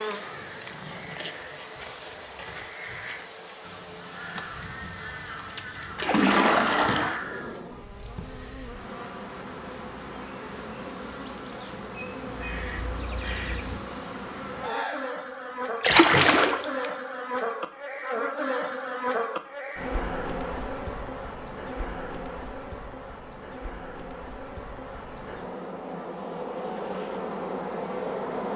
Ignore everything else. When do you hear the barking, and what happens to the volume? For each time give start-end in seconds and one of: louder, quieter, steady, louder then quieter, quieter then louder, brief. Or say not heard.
not heard.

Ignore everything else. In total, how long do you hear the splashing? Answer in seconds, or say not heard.
2 s.